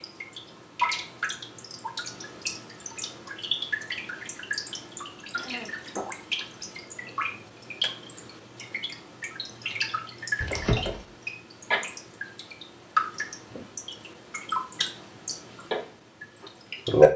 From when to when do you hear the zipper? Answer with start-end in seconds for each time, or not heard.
10.4-11.1.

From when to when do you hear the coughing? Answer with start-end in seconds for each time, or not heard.
5.3-5.8.